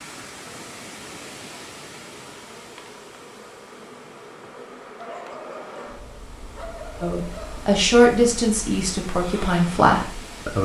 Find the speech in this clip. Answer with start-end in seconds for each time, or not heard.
7.0-10.5.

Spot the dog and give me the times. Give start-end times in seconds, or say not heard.
5.0-7.7.